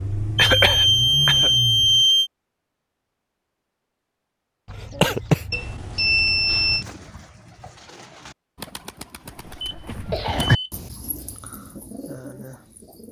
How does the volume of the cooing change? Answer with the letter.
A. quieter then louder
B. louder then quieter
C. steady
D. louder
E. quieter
B.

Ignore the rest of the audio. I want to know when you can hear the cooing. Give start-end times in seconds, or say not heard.
6.7-13.0.